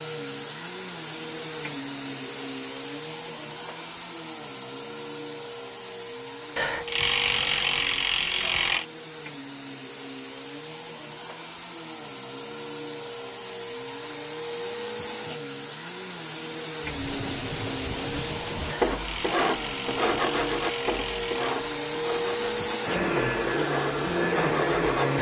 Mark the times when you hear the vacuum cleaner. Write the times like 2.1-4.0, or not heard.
0.0-25.1.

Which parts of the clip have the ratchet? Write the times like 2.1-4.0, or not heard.
6.5-8.8, 18.6-21.5.